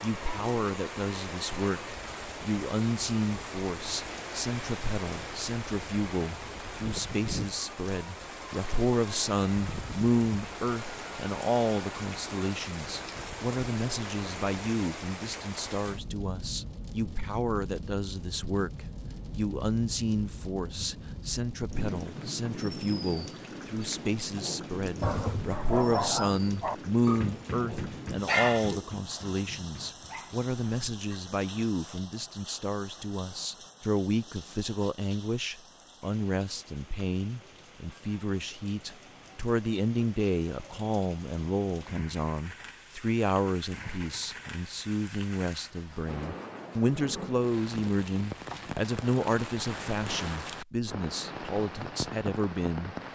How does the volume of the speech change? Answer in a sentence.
The volume of the speech stays about the same.